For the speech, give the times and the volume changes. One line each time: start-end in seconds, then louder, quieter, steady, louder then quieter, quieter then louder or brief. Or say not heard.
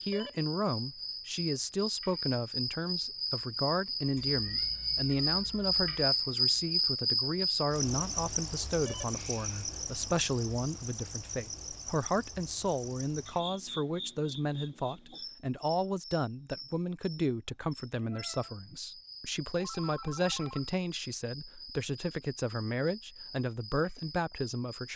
0.0-24.9 steady.